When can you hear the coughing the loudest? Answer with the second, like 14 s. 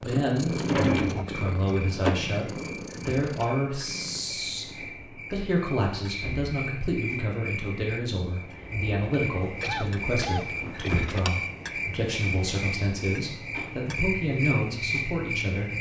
10 s.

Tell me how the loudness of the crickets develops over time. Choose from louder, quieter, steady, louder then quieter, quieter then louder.
louder.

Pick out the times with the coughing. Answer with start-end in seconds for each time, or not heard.
9.6-11.2.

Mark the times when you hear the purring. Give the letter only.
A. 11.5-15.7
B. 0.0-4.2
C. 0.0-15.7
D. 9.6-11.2
B.